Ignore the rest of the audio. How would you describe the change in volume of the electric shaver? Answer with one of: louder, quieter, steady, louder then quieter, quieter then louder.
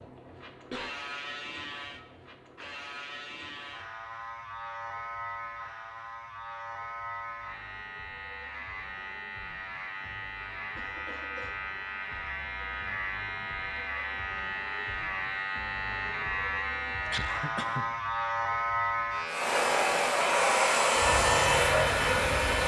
louder.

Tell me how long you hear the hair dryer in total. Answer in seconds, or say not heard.
3 s.